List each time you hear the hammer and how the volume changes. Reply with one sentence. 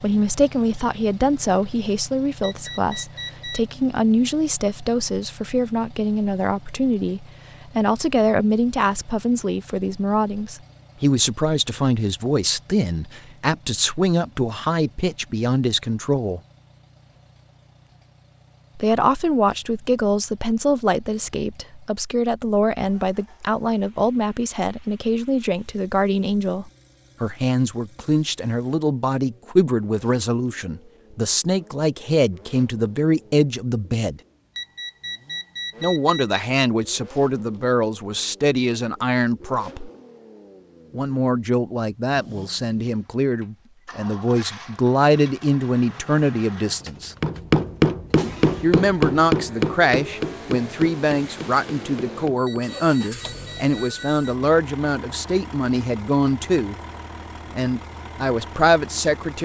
The hammer can be heard from 47.2 to 52.7 s, getting quieter.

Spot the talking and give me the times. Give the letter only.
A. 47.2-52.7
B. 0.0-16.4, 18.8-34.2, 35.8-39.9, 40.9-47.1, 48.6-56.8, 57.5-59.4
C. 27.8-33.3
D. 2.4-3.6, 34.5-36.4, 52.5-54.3
B.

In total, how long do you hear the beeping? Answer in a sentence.
The beeping can be heard for 5 seconds in total.